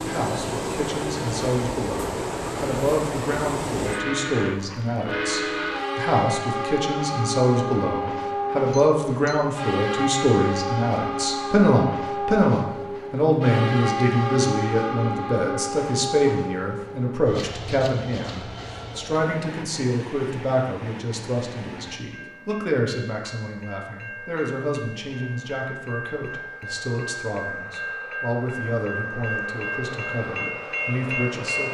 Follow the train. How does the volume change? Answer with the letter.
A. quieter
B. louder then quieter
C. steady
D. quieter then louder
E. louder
D.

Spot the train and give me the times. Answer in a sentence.
The train can be heard from 0.0 to 31.6 s.